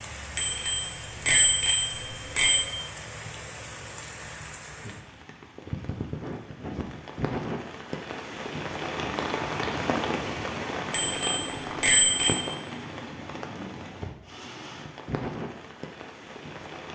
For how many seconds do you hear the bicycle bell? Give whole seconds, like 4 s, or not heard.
4 s.